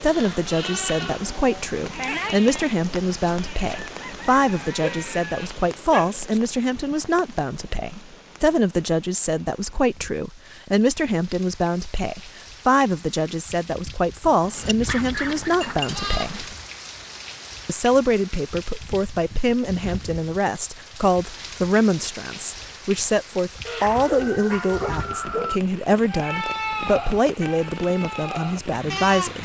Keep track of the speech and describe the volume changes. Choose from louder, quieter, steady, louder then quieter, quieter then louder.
steady.